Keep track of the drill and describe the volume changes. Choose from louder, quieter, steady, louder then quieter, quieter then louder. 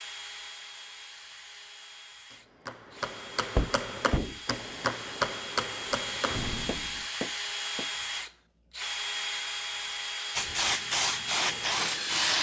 louder.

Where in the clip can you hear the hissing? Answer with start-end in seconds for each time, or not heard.
10.3-12.3.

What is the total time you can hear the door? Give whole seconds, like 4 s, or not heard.
2 s.